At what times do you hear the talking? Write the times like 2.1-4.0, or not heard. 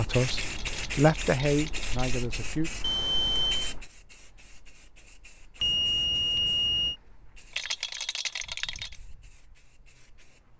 0.0-2.7.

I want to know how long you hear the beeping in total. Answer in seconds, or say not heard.
2 s.